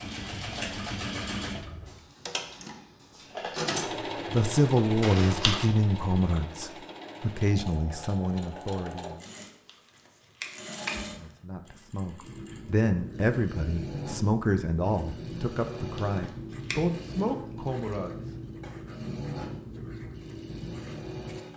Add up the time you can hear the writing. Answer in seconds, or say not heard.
9 s.